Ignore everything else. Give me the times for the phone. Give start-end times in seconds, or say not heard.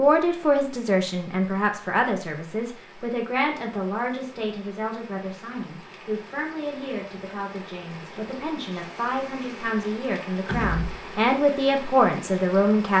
not heard.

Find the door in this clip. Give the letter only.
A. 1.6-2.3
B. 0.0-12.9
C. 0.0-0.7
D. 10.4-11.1
D.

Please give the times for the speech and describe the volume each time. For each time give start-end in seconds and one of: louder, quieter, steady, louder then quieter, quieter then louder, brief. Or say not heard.
0.0-12.9 quieter then louder.